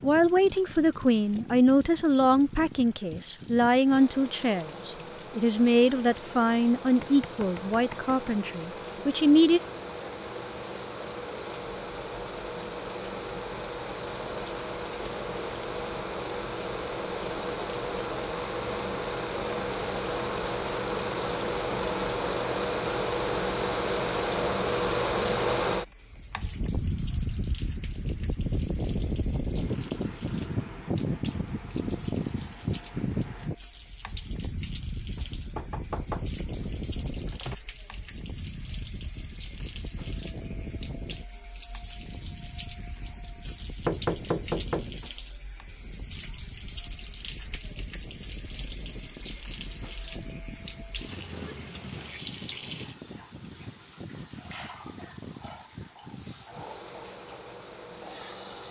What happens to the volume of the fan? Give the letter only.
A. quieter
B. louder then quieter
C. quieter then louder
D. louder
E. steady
B.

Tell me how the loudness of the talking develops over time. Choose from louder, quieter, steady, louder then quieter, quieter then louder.
quieter.